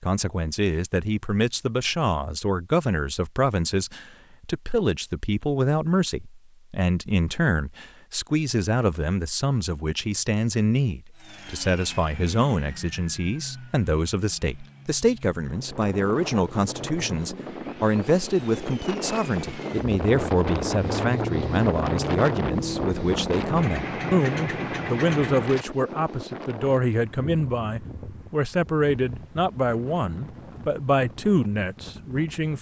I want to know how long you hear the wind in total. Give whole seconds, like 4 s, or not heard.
17 s.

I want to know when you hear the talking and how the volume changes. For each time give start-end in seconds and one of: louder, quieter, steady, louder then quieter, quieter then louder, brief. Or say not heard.
0.0-32.5 steady.